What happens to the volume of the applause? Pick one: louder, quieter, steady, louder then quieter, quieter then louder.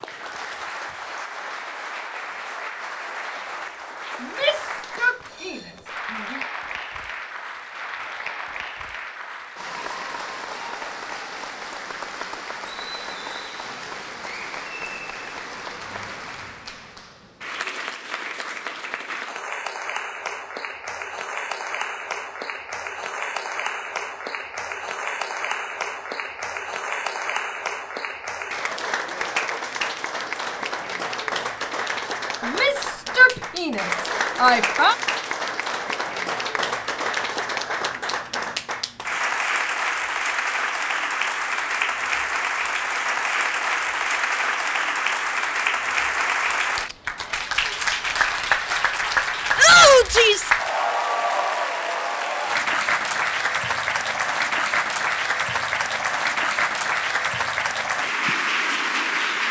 louder.